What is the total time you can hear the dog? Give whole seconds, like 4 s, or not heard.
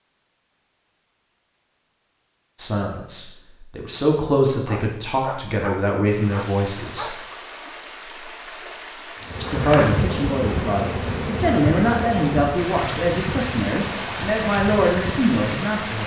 3 s.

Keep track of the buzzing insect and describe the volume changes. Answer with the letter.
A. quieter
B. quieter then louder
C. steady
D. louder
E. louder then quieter
A.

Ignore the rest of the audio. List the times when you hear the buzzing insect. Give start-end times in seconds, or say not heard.
9.2-16.0.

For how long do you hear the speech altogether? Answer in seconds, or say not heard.
11 s.